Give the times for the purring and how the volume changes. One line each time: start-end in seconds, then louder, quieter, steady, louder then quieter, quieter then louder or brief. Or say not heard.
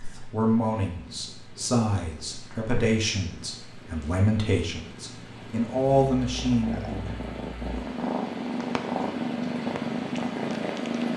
0.0-11.1 louder.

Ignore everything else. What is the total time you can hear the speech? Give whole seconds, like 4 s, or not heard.
7 s.